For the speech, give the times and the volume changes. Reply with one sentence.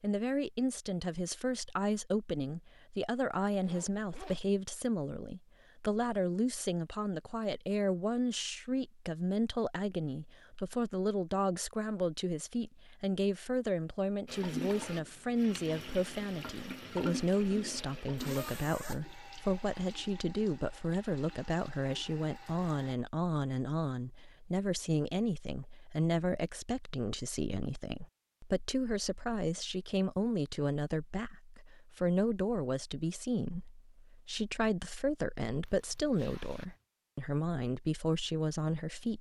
The speech can be heard from 0.0 to 39.1 s, at a steady volume.